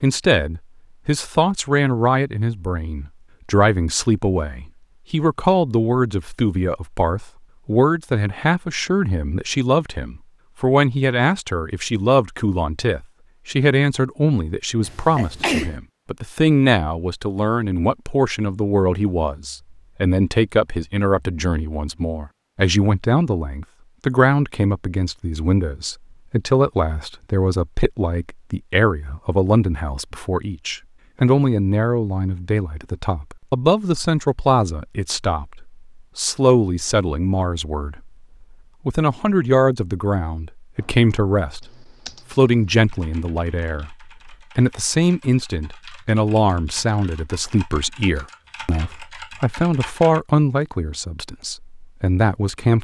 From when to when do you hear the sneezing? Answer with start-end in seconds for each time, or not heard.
14.8-15.7.